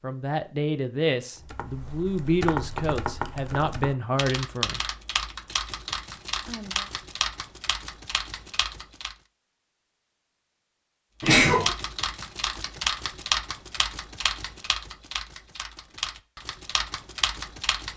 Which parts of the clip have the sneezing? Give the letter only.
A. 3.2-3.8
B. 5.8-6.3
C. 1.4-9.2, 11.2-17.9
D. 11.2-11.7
D.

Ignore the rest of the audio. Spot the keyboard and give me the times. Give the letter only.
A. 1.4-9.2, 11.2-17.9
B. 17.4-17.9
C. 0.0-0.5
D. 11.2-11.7
A.